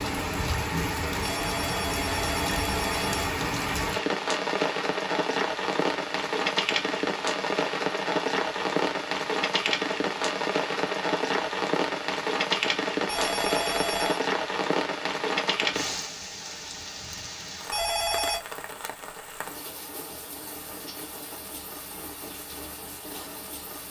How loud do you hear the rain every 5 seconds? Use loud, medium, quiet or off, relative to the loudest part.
loud, loud, loud, medium, quiet.